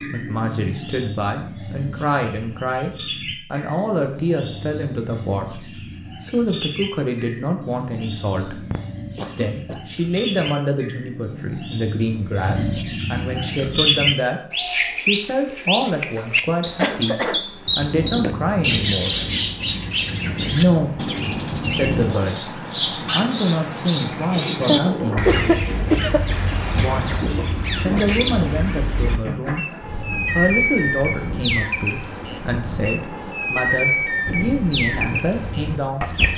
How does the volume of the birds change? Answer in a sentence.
The volume of the birds goes up.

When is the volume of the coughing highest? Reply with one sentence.
The volume of the coughing peaks at 25 seconds.